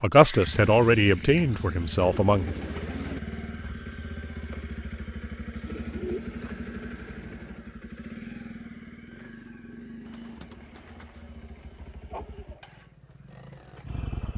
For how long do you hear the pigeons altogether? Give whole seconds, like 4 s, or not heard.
5 s.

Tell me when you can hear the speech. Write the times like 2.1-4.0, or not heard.
0.0-2.5.